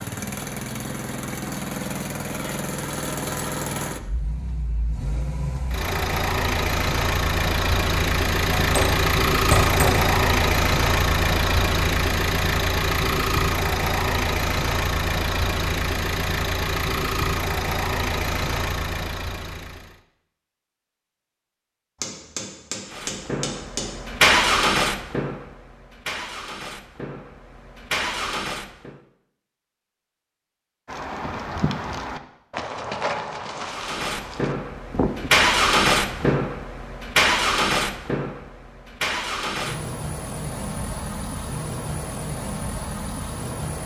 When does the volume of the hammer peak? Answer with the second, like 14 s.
10 s.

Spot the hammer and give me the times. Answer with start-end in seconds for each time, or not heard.
8.6-10.1, 22.0-23.9.